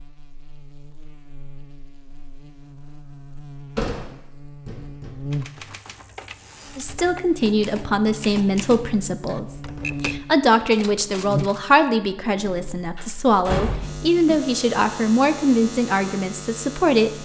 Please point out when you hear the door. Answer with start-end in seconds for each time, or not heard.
3.8-5.1, 12.9-14.4.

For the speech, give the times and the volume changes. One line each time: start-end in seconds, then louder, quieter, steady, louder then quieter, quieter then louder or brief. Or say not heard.
6.8-17.2 steady.